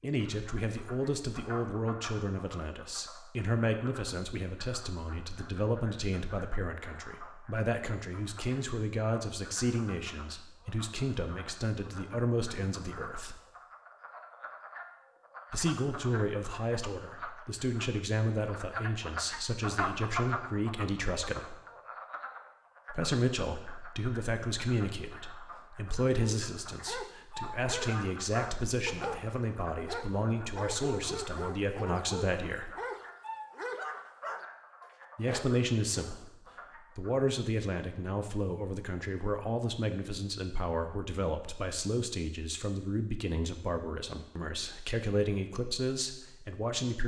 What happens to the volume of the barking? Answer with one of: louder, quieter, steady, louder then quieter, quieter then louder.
steady.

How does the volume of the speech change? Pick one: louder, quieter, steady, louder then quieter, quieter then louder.
steady.